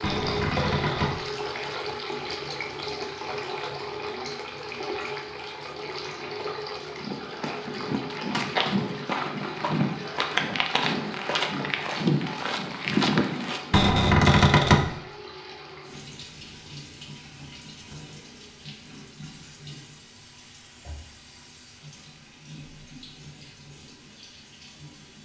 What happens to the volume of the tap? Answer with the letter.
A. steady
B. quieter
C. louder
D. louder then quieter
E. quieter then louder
B.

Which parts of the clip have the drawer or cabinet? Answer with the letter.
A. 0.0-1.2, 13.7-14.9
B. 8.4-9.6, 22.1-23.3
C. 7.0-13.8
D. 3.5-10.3
A.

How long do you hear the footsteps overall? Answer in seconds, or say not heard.
7 s.